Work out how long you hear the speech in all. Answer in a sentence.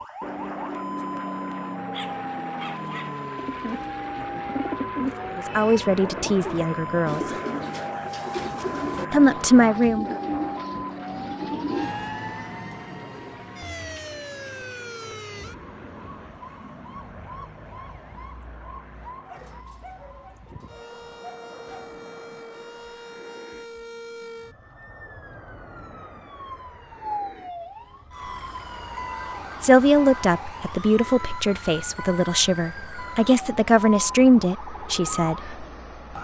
You can hear the speech for 9 seconds altogether.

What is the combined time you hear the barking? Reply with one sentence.
The barking can be heard for 5 seconds in total.